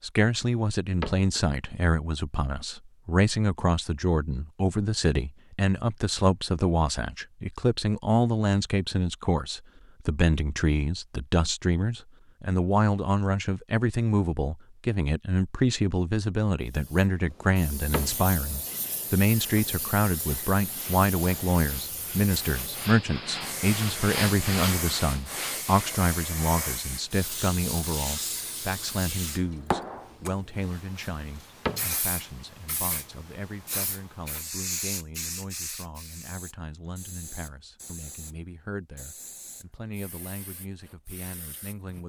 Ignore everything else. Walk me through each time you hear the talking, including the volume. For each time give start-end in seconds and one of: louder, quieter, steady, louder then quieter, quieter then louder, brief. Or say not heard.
0.0-42.0 quieter.